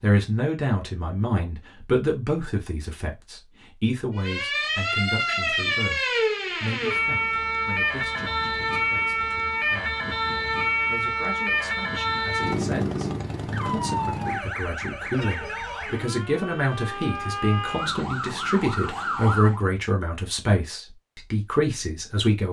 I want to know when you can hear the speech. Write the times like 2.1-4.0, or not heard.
0.0-22.4.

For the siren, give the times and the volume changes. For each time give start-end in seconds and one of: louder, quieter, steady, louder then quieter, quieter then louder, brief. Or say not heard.
4.2-19.6 quieter.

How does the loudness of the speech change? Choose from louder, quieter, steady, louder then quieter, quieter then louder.
quieter then louder.